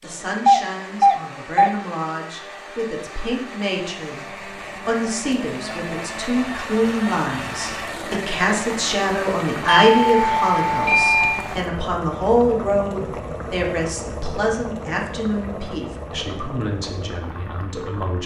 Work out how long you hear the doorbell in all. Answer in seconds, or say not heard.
3 s.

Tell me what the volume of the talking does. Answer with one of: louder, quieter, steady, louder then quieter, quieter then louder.
louder then quieter.